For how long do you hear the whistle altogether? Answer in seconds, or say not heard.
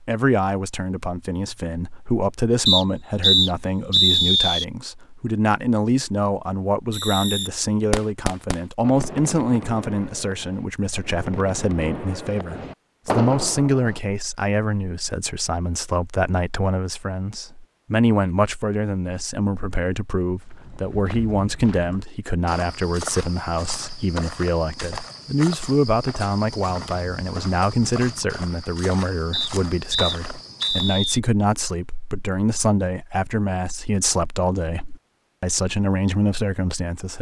4 s.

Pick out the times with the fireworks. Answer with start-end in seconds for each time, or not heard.
6.9-14.0.